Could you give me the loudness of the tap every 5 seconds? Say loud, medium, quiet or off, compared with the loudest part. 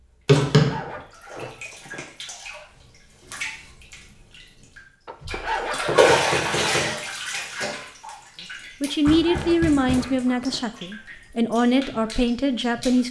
quiet, loud, quiet.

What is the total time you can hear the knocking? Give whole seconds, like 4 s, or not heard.
3 s.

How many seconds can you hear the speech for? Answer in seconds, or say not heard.
4 s.